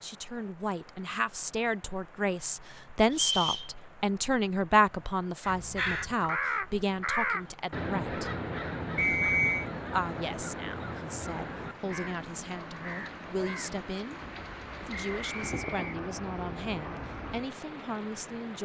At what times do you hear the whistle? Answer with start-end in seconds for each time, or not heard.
3.1-3.7, 8.9-9.7, 14.9-16.0.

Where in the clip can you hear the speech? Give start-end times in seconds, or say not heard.
0.0-8.3, 9.9-14.2, 14.8-18.5.